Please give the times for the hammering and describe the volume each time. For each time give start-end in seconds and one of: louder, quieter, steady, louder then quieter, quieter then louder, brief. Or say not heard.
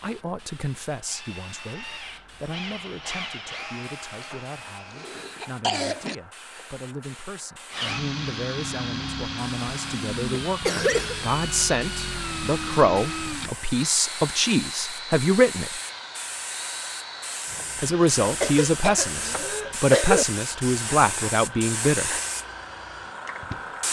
not heard.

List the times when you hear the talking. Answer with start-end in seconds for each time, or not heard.
0.0-15.8, 17.8-22.1.